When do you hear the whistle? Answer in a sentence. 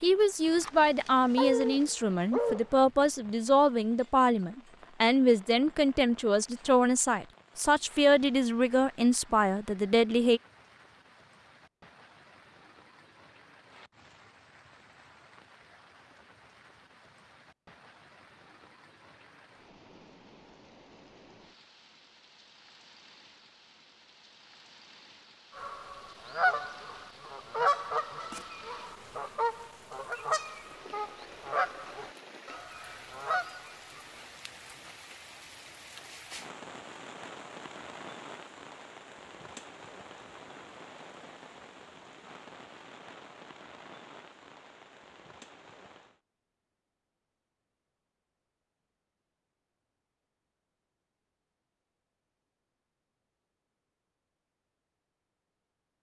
The whistle can't be heard in this clip.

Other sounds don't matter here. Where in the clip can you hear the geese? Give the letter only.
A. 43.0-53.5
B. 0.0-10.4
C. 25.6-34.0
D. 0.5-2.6
C.